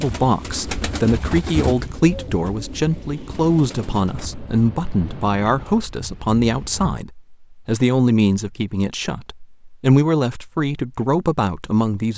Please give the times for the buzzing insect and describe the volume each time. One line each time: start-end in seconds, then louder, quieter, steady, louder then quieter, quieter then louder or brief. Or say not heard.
not heard.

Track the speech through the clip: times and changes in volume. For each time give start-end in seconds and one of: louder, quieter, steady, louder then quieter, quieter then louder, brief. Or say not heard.
0.0-12.1 steady.